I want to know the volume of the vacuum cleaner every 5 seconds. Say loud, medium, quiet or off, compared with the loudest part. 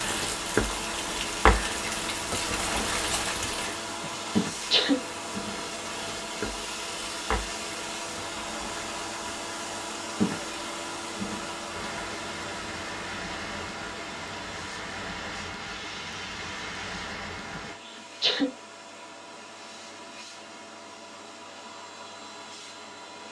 loud, loud, loud, medium, medium.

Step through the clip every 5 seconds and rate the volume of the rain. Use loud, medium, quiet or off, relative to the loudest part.
loud, medium, medium, medium, off.